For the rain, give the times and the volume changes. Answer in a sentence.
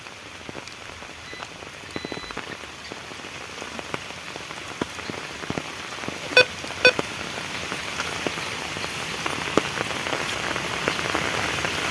You can hear the rain from 0.0 to 11.8 s, getting louder.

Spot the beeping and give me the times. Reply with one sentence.
You can hear the beeping from 0.7 to 2.4 s and from 6.3 to 7.0 s.